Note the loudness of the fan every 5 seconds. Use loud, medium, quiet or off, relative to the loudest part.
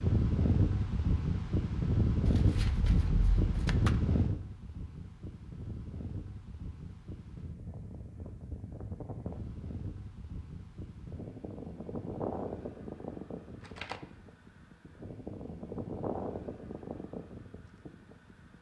loud, quiet, medium, medium.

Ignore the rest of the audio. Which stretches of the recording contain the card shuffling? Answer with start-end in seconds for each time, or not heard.
2.2-4.0, 13.6-14.2.